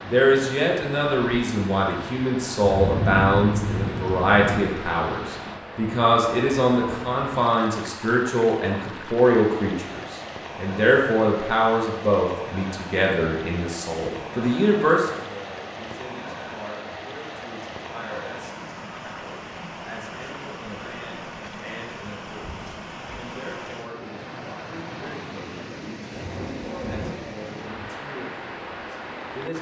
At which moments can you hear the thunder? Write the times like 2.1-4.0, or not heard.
2.6-4.7, 26.1-27.2.